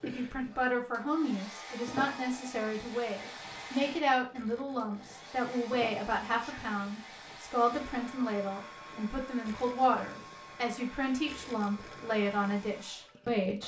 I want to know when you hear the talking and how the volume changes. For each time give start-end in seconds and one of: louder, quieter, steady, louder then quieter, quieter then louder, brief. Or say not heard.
0.0-13.6 steady.